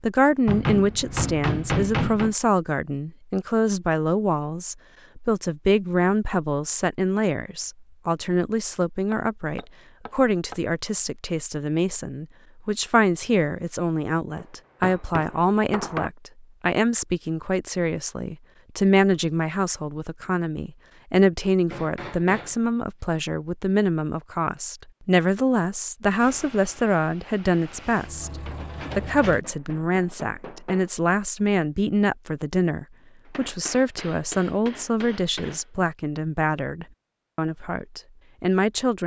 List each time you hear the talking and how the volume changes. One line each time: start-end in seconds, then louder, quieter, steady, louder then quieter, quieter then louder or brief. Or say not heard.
0.0-39.0 steady.